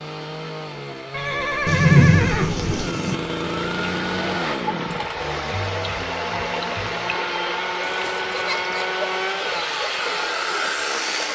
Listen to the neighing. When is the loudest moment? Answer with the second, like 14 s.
2 s.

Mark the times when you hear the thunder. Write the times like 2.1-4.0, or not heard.
1.6-3.1.